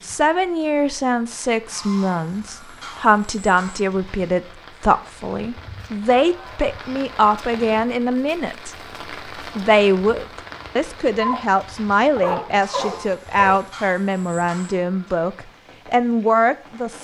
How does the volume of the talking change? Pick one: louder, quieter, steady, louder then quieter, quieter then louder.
steady.